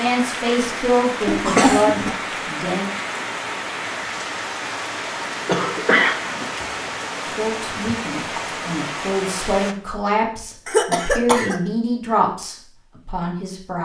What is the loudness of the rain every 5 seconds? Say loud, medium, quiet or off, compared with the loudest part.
loud, loud, off.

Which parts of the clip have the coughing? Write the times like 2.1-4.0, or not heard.
1.2-2.1, 5.4-6.5, 10.7-11.6.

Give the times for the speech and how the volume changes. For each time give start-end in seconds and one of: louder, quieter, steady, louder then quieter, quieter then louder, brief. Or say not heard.
0.0-2.9 brief
7.3-13.8 louder then quieter.